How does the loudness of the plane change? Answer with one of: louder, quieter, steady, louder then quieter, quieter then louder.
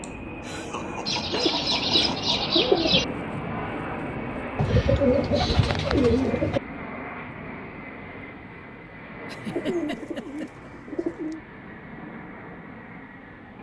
quieter.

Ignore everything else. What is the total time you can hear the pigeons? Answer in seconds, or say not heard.
6 s.